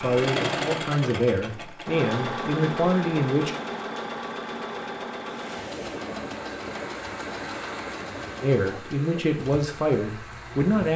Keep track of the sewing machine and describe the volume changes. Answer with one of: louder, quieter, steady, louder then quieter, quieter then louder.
quieter.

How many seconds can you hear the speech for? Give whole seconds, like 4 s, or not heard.
6 s.